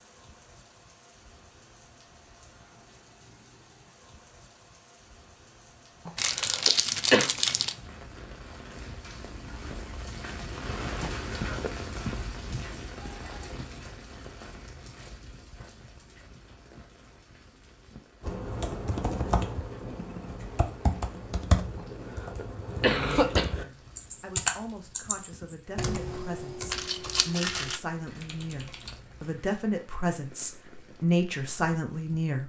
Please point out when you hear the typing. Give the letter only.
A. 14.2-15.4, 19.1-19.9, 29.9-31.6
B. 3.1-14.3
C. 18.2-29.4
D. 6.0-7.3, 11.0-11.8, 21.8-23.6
C.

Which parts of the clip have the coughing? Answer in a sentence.
The coughing can be heard from 6.0 to 7.3 s, from 11.0 to 11.8 s and from 21.8 to 23.6 s.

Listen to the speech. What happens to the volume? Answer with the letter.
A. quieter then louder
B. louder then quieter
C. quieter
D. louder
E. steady
D.